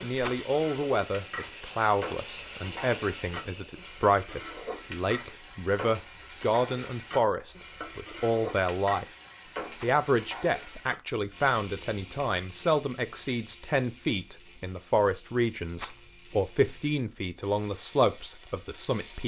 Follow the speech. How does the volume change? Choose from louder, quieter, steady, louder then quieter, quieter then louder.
steady.